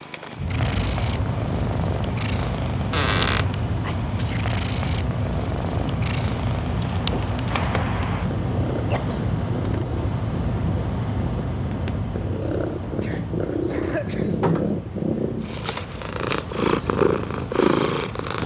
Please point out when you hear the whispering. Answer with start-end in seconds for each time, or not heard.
not heard.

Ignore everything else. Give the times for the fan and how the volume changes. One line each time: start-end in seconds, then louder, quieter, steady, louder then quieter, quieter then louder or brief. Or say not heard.
0.0-18.4 quieter.